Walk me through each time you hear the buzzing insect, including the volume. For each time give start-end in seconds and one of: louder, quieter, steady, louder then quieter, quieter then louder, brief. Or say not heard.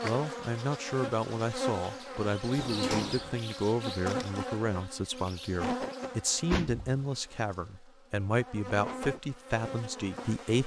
0.0-10.6 quieter then louder.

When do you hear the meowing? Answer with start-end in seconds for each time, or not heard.
not heard.